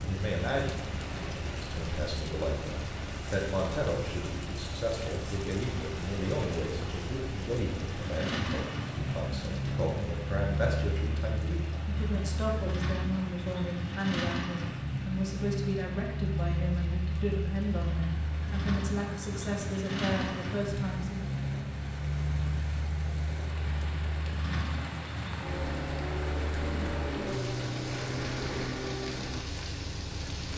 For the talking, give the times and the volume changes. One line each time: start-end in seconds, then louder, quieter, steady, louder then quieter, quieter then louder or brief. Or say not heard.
0.0-21.4 steady.